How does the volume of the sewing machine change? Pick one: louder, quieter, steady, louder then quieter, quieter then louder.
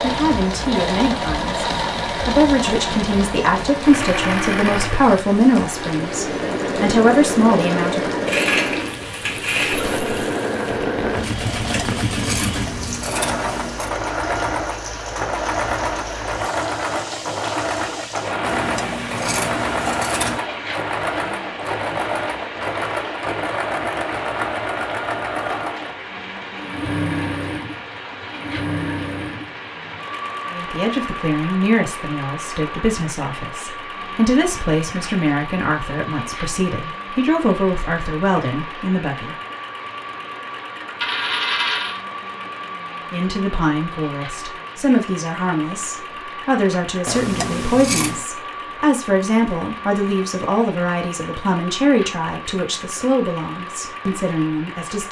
quieter.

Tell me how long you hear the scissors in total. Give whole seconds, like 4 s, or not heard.
6 s.